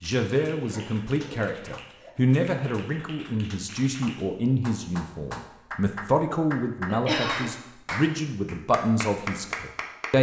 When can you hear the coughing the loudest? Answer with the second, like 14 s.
7 s.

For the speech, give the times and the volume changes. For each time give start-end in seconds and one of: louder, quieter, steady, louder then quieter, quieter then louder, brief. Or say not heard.
0.0-10.1 steady.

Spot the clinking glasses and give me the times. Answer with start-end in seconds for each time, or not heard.
not heard.